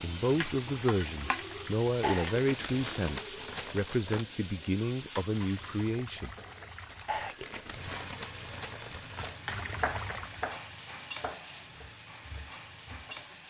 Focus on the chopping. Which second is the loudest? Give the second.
10 s.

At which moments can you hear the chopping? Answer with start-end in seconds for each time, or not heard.
9.2-13.3.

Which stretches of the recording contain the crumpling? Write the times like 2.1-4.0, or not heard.
2.0-4.2, 7.0-9.4.